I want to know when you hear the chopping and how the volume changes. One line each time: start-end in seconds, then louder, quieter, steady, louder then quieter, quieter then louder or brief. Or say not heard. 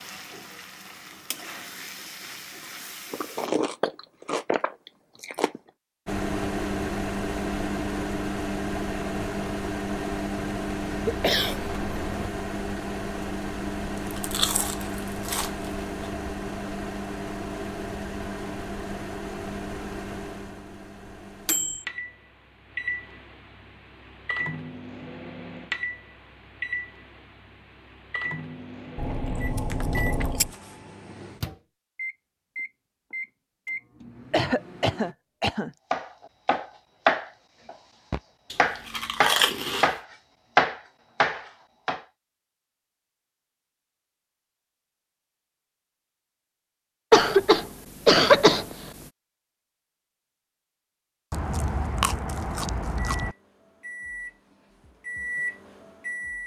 35.9-42.0 quieter then louder.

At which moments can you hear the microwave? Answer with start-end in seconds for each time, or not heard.
6.0-35.1, 53.1-56.4.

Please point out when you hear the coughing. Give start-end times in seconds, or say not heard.
10.9-12.3, 34.3-35.7, 47.1-48.8.